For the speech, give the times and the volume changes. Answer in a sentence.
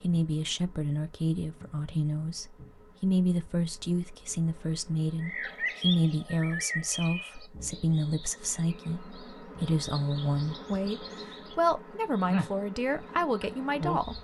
The speech can be heard from 0.0 to 14.1 s, at a steady volume.